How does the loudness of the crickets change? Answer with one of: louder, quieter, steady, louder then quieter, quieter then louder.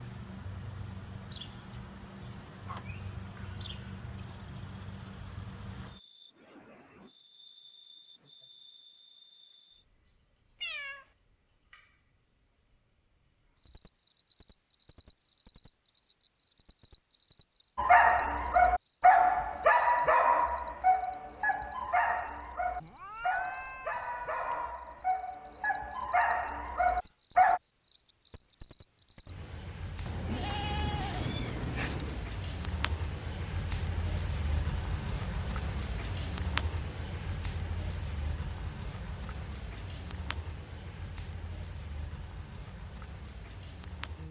louder.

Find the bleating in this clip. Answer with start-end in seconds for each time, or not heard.
30.1-32.0.